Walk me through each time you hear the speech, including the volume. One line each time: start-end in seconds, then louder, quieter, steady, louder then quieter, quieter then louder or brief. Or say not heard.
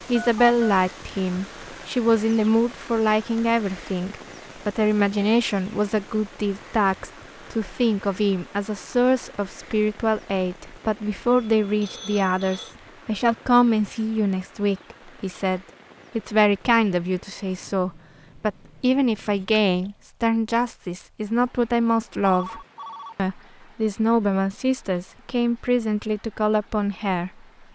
0.1-27.7 steady.